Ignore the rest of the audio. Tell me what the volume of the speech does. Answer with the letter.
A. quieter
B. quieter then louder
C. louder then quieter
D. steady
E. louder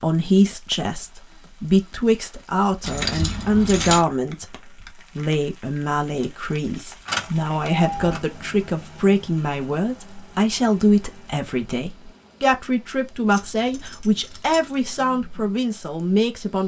D.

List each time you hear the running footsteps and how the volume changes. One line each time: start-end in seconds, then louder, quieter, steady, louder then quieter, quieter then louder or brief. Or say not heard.
not heard.